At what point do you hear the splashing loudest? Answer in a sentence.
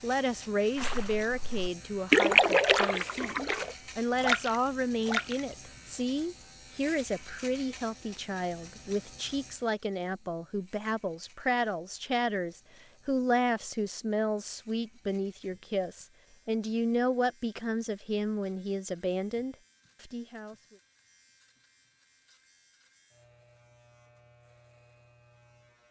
The volume of the splashing peaks at 2 seconds.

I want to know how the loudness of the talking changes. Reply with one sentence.
The volume of the talking stays about the same.